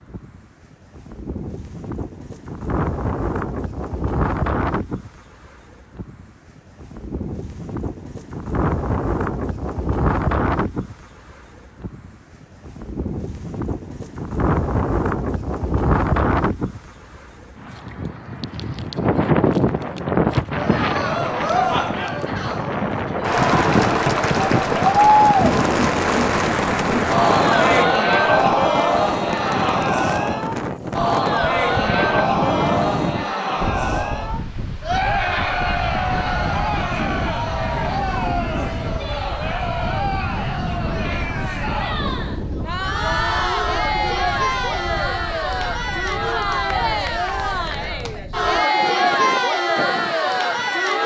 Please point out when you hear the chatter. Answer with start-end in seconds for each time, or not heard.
20.6-51.0.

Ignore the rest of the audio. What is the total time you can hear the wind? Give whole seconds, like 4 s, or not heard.
51 s.